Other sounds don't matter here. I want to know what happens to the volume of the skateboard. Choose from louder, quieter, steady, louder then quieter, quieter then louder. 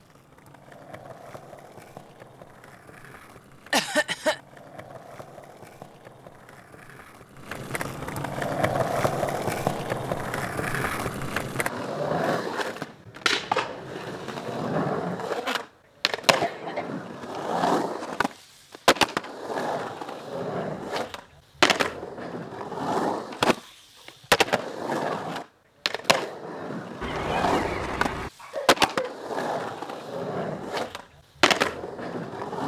louder.